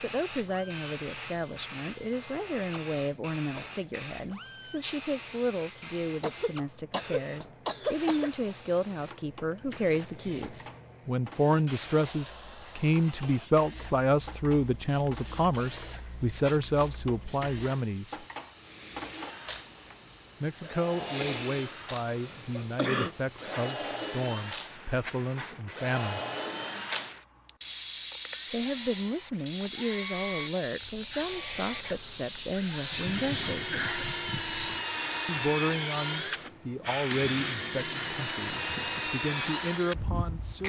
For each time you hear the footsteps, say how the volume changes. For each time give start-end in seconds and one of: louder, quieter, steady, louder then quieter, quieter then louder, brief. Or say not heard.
not heard.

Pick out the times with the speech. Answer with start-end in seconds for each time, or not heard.
0.0-18.2, 20.4-26.2, 28.5-33.8, 35.2-40.6.